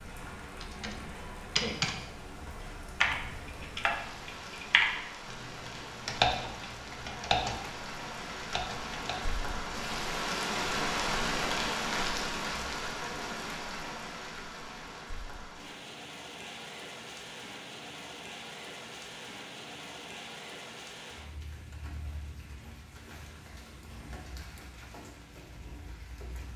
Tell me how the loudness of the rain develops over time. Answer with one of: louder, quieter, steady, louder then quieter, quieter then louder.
louder then quieter.